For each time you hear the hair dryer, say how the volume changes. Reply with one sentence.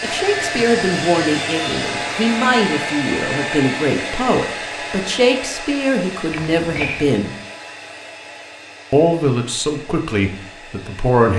The hair dryer can be heard from 0.0 to 11.3 s, getting quieter.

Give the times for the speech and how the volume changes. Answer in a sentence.
The speech can be heard from 0.0 to 7.3 s, at a steady volume; and briefly from 8.9 to 11.3 s.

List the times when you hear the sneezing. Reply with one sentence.
The sneezing can be heard from 6.3 to 7.2 s.